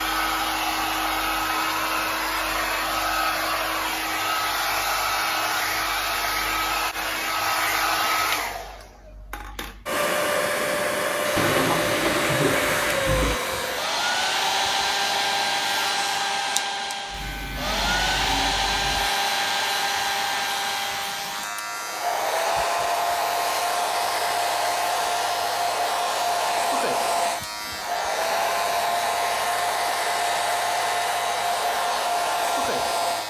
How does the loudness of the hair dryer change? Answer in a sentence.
The loudness of the hair dryer stays about the same.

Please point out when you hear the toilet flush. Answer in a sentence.
The toilet flush can be heard from 11.3 to 13.4 s.